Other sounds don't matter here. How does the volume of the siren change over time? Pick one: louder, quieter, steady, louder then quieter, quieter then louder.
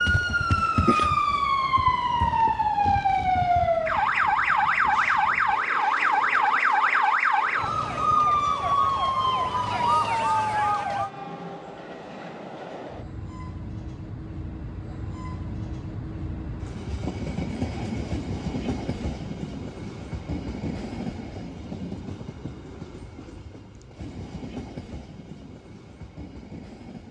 steady.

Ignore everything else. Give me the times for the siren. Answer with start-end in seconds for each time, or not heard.
0.0-11.1.